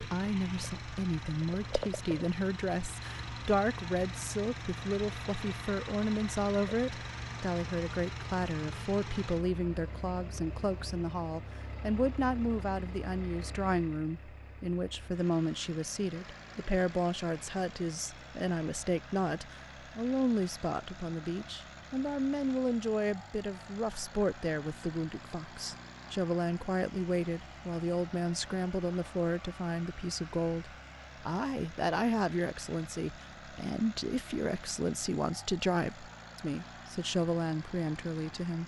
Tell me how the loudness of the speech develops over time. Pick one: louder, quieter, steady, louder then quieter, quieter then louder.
steady.